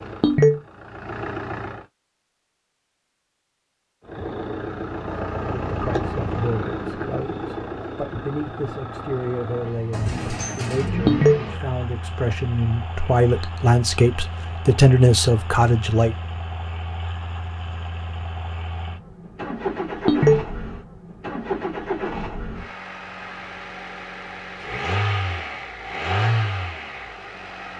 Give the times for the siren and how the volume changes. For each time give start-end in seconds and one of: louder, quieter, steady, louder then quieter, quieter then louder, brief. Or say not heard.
not heard.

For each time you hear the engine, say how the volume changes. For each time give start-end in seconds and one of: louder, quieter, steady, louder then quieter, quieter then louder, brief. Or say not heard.
0.0-1.9 brief
4.0-27.7 quieter then louder.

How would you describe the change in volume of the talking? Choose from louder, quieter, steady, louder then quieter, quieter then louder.
louder.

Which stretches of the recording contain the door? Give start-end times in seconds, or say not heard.
9.9-10.9.